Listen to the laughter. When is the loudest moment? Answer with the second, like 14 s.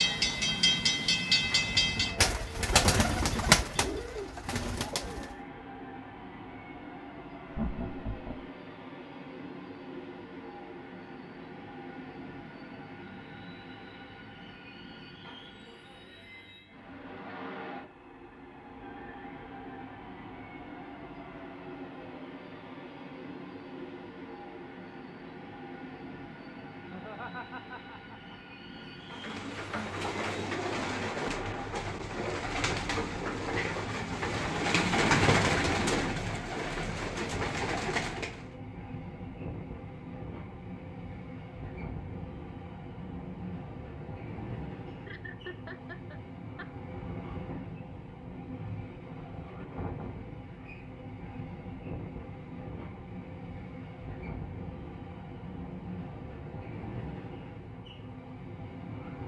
8 s.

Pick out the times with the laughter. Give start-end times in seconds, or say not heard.
7.5-8.5, 26.9-28.6, 44.9-46.6.